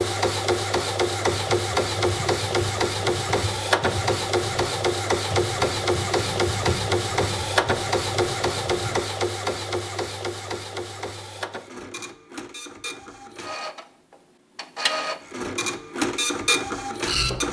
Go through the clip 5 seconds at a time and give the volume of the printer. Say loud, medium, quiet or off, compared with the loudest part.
loud, loud, medium, loud.